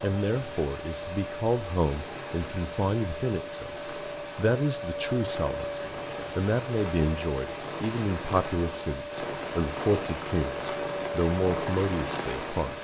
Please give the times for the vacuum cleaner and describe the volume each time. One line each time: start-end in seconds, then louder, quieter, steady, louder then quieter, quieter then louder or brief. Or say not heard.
0.0-12.7 steady.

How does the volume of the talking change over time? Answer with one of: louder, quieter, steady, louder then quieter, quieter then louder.
steady.